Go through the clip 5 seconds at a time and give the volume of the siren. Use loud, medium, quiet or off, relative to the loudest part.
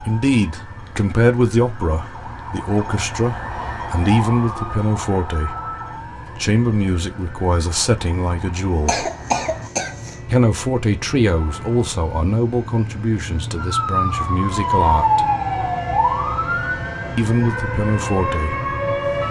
medium, quiet, loud, loud.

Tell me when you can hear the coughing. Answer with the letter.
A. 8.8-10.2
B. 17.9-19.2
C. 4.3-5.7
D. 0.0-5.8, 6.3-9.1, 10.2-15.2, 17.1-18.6
A.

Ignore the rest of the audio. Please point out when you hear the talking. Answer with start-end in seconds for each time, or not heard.
0.0-5.8, 6.3-9.1, 10.2-15.2, 17.1-18.6.